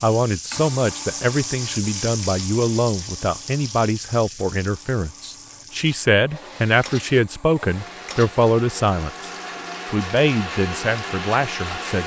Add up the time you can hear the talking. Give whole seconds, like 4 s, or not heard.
12 s.